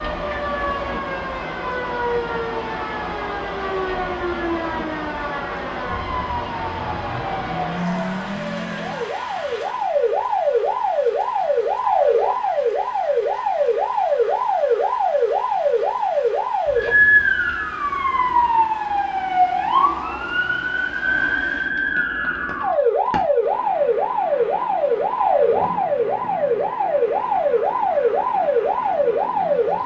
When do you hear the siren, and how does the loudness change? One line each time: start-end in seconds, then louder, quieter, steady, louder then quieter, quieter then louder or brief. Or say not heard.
0.0-29.8 louder.